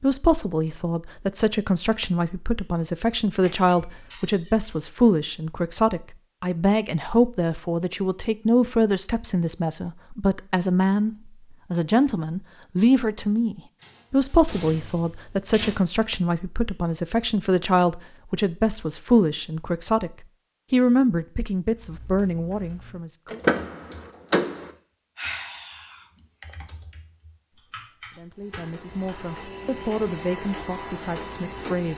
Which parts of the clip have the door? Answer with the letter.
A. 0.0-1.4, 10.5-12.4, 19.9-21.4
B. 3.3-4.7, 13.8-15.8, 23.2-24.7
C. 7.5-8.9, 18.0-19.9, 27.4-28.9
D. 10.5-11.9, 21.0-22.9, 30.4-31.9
B.